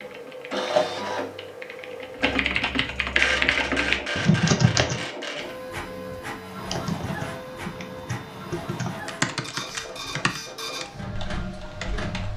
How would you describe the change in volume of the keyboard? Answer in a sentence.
The volume of the keyboard goes up, then down.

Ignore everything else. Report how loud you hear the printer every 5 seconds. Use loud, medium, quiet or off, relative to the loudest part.
loud, medium, medium.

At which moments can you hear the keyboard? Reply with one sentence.
You can hear the keyboard from 0.0 to 5.0 s and from 6.5 to 12.3 s.